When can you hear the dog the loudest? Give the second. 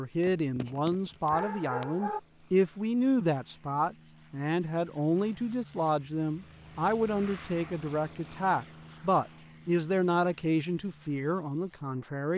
2 s.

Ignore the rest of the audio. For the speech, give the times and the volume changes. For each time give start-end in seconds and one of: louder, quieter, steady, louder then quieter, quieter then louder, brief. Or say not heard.
0.0-12.3 steady.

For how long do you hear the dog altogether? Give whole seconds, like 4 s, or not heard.
2 s.